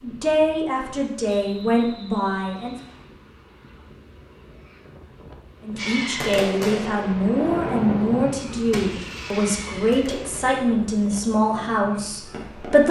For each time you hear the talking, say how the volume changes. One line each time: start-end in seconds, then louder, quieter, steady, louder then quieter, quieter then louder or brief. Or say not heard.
0.0-2.8 brief
5.6-12.8 steady.